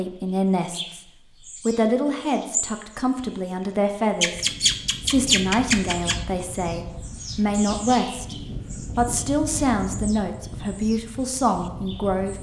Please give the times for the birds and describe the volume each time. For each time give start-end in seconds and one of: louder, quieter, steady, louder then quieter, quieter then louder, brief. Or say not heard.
0.2-3.0 brief
4.2-12.3 quieter.